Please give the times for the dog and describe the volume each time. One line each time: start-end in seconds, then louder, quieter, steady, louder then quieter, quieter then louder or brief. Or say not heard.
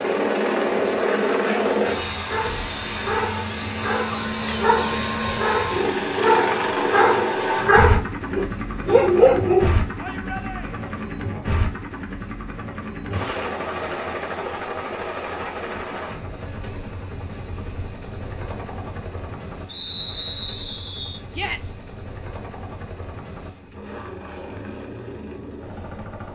2.2-9.8 louder.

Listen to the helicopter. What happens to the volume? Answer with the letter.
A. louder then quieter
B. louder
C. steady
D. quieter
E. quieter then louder
D.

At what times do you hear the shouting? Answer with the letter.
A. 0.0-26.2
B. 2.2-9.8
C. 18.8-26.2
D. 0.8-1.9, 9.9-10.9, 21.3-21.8
D.